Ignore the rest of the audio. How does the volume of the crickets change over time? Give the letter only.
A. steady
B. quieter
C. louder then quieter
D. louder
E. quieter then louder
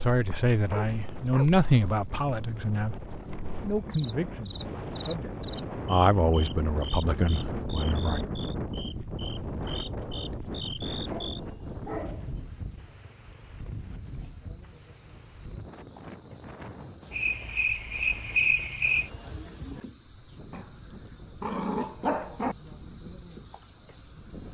D.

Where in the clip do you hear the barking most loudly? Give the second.
22 s.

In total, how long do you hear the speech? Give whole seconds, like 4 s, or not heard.
8 s.